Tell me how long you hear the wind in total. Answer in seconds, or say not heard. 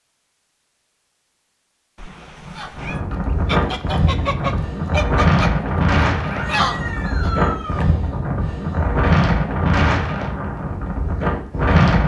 9 s.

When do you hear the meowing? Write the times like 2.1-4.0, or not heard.
1.9-3.0, 6.2-7.8.